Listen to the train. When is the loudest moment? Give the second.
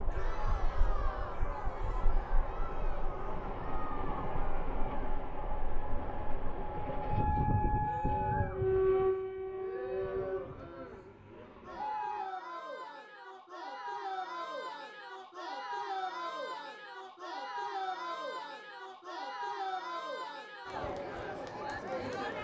9 s.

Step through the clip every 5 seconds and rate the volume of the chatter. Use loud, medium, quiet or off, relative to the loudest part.
medium, medium, loud, loud, loud.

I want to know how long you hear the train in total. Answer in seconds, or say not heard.
12 s.